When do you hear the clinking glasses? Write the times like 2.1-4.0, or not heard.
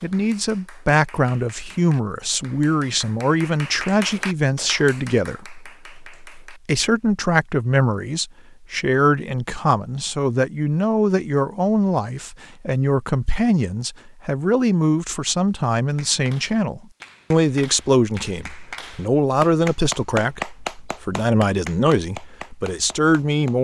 not heard.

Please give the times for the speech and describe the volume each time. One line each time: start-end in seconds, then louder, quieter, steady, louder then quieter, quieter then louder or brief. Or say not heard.
0.0-23.5 steady.